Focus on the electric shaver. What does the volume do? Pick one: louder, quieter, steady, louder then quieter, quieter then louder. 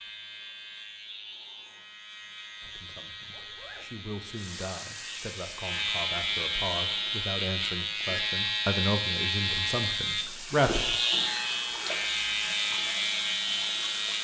louder.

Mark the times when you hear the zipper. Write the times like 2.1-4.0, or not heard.
2.6-3.9.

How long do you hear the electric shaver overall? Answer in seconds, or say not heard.
14 s.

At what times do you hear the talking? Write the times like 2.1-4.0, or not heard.
2.6-10.9.